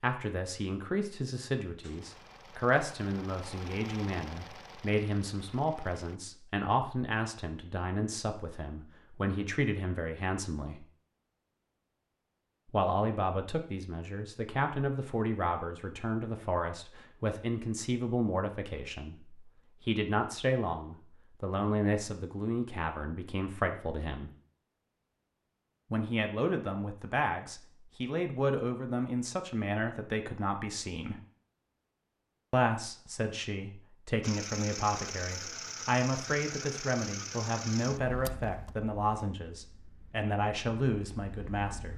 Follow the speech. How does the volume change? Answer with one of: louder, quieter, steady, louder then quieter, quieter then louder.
steady.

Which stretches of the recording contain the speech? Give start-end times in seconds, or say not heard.
0.0-10.8, 12.7-24.3, 25.9-31.2, 32.5-41.9.